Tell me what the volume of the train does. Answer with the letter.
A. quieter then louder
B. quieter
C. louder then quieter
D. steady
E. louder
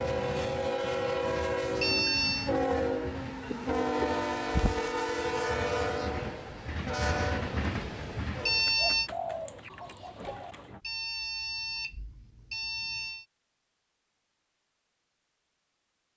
D.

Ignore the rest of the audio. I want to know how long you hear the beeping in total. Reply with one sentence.
You can hear the beeping for 4 seconds altogether.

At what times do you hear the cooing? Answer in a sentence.
The cooing can be heard from 3.5 to 5.1 s and from 8.7 to 10.8 s.